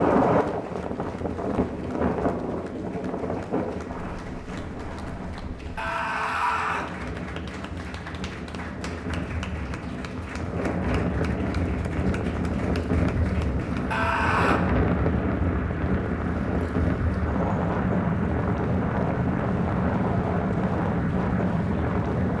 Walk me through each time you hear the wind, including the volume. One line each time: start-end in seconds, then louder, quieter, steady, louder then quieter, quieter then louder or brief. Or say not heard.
0.0-22.3 quieter then louder.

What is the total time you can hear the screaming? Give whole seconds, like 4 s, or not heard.
2 s.